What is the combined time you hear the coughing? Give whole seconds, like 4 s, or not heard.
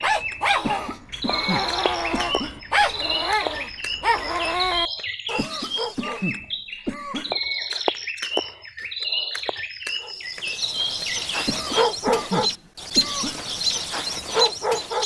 6 s.